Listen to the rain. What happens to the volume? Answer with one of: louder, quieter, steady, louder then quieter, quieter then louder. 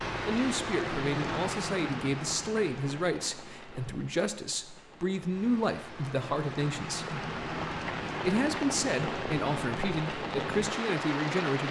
quieter then louder.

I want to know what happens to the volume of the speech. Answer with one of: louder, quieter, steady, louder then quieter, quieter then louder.
steady.